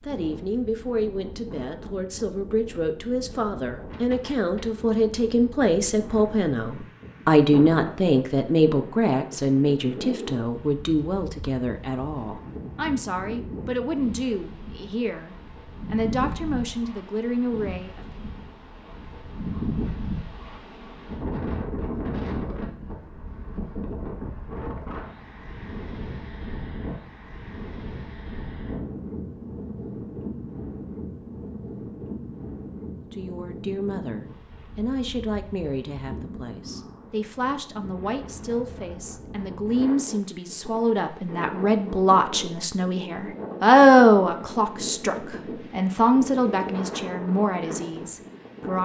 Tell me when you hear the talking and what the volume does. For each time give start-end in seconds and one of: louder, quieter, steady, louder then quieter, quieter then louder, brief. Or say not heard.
0.1-18.1 louder then quieter
33.0-48.8 louder then quieter.